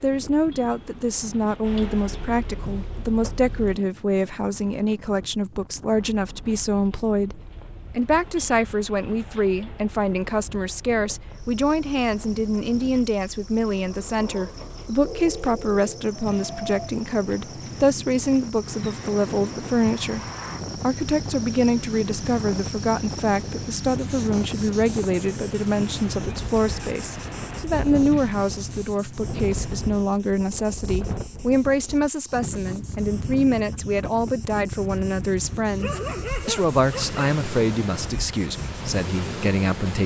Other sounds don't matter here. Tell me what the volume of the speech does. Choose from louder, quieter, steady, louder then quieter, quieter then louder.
steady.